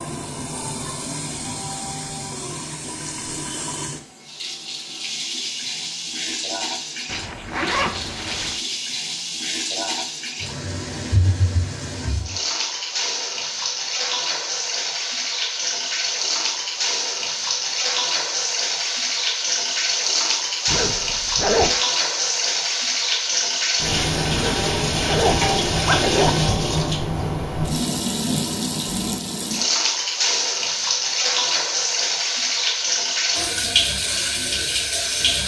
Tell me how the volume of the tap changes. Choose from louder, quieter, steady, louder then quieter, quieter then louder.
louder.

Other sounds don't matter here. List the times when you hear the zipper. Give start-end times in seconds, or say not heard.
7.0-8.6, 20.6-21.8, 24.3-26.3.